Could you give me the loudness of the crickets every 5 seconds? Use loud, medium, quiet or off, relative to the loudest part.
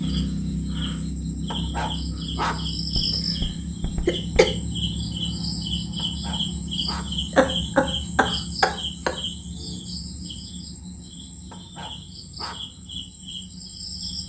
loud, loud, medium.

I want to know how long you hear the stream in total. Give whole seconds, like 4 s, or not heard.
not heard.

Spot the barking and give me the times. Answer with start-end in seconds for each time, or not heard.
1.5-2.6, 6.0-7.2, 11.5-12.7.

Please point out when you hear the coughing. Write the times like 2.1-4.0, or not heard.
3.0-4.5, 7.3-9.2.